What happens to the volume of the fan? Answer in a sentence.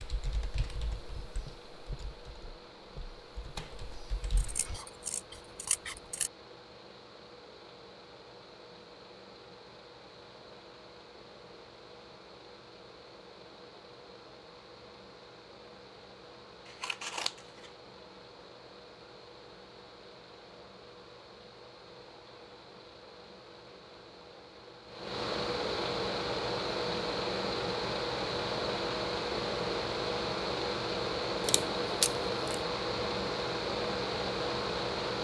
The volume of the fan goes up.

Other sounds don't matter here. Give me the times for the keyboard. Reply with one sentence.
The keyboard can be heard from 0.0 to 4.8 s.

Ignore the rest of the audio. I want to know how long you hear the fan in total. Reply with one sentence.
The fan can be heard for 35 seconds in total.